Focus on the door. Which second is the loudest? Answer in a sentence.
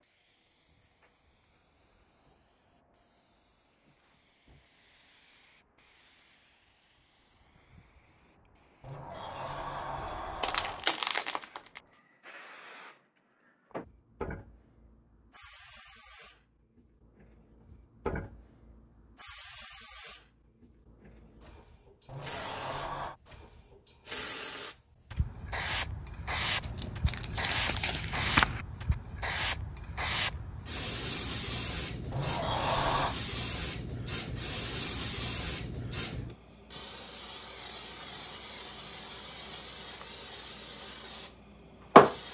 The volume of the door peaks at 33 seconds.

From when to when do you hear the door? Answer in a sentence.
The door can be heard from 8.8 to 10.9 s, from 22.1 to 23.1 s and from 32.1 to 33.1 s.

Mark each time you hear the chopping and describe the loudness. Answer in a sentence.
You can't hear the chopping here.